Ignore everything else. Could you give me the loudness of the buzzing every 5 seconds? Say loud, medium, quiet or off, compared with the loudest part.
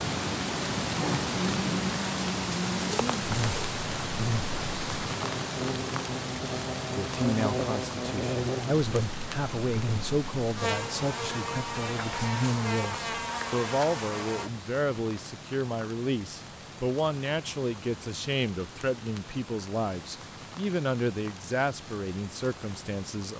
loud, loud, loud, off, off.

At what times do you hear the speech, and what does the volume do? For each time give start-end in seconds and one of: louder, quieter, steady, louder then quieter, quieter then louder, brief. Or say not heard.
6.8-23.3 steady.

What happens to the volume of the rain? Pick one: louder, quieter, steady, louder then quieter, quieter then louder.
quieter.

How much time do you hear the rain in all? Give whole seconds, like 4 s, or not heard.
23 s.